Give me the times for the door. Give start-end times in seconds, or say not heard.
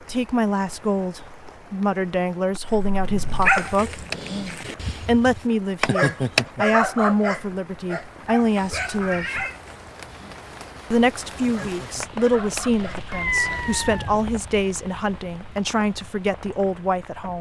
3.5-4.2, 5.8-6.5, 12.0-12.7.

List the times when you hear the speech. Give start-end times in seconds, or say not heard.
0.1-4.0, 5.0-9.4, 10.9-17.3.